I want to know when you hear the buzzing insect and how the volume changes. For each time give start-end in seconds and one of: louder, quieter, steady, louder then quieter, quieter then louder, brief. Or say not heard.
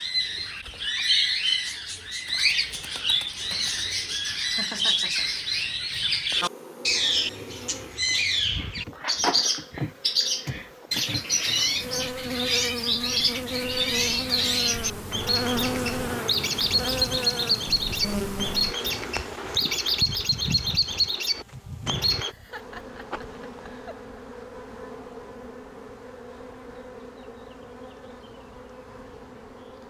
6.3-29.8 louder then quieter.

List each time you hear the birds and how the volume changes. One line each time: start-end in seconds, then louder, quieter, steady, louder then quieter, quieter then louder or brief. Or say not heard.
0.0-22.4 steady.